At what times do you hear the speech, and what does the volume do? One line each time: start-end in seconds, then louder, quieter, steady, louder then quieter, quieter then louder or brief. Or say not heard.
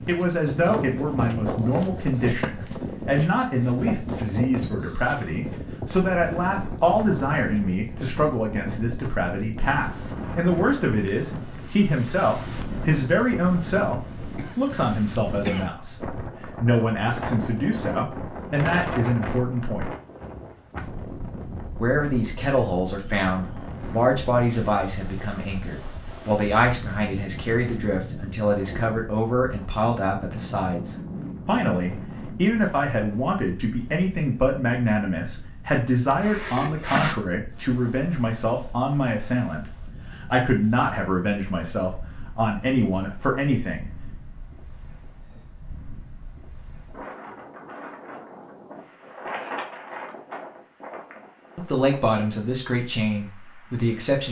0.1-19.9 steady
21.8-44.0 steady
51.5-54.2 brief.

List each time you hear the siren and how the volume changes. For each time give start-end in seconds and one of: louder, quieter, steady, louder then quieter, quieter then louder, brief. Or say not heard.
not heard.